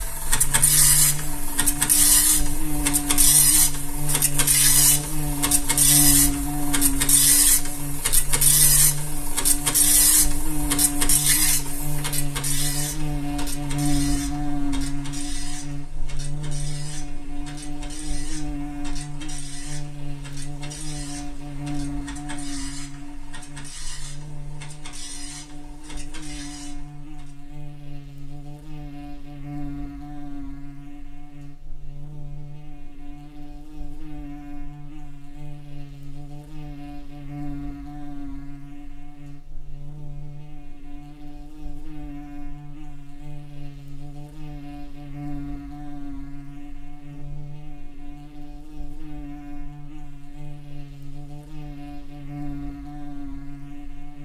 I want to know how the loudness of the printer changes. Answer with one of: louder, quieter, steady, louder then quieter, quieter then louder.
quieter.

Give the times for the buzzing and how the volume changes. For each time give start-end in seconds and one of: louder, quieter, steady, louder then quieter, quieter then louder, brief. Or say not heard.
0.0-54.2 quieter.